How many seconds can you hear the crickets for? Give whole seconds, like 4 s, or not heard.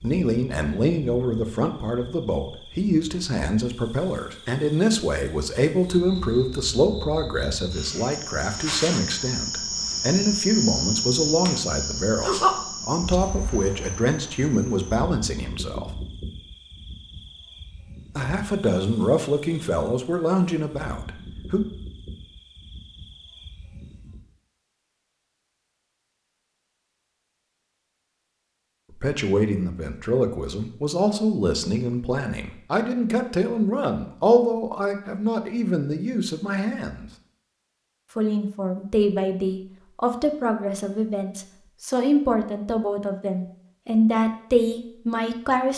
24 s.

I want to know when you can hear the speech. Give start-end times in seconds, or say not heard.
0.0-15.9, 18.1-21.6, 28.9-37.1, 38.1-45.7.